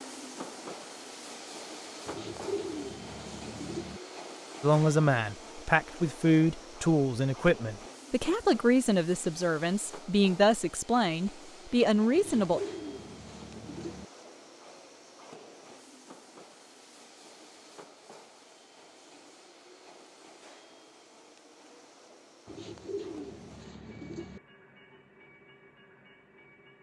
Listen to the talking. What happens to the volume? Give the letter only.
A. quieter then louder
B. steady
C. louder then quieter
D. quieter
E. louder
B.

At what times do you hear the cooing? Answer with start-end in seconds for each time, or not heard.
2.0-4.0, 12.2-14.1, 22.4-24.4.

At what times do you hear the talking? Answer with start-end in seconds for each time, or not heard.
4.6-12.6.